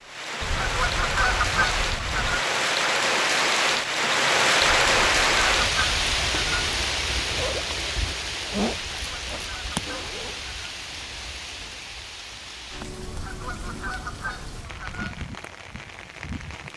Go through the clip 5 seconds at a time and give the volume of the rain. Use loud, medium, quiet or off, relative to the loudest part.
loud, loud, quiet, quiet.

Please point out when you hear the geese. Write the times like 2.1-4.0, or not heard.
0.4-2.5, 4.8-6.8, 8.9-10.8, 13.1-15.2.